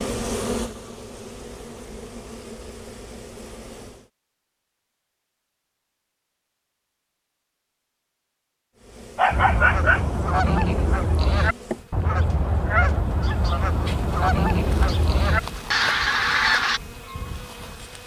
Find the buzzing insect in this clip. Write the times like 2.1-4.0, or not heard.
0.0-4.1, 8.8-18.0.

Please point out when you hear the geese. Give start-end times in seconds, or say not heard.
9.3-16.8.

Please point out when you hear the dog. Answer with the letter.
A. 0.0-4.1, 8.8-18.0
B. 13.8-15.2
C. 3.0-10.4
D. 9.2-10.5
D.